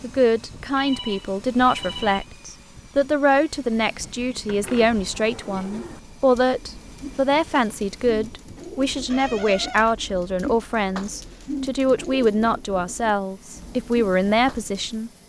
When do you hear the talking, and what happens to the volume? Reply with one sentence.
The talking can be heard from 0.0 to 15.1 s, at a steady volume.